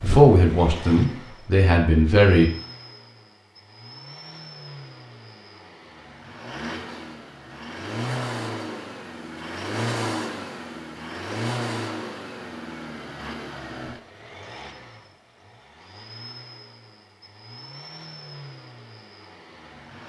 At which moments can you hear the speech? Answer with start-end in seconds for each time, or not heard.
0.0-2.5.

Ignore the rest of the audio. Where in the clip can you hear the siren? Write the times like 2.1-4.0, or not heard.
not heard.